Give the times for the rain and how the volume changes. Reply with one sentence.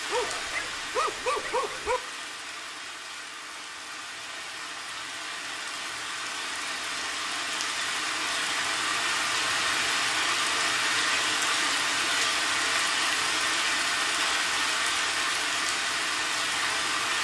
You can hear the rain from 0.0 to 17.2 s, getting louder.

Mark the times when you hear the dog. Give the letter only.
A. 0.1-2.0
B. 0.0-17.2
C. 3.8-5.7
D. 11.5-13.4
A.